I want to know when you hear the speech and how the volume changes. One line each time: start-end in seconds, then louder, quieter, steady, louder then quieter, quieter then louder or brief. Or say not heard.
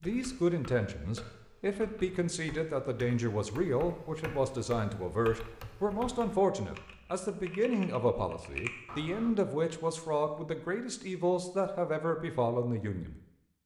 0.0-13.2 steady.